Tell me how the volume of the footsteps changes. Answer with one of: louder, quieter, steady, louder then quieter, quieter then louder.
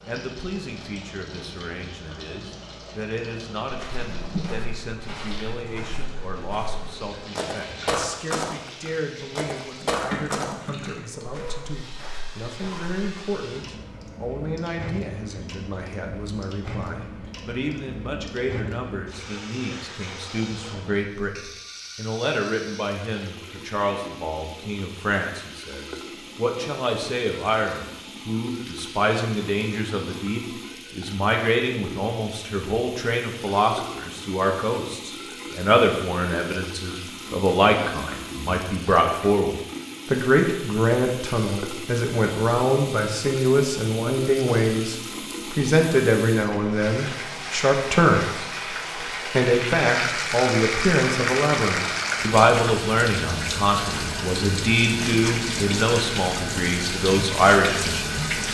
louder then quieter.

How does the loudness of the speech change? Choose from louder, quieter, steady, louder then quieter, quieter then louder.
louder.